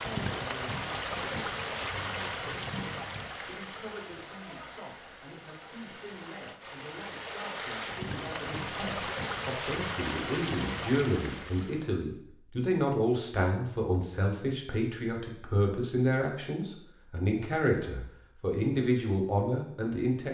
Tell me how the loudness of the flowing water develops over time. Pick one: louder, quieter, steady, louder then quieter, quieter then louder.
quieter then louder.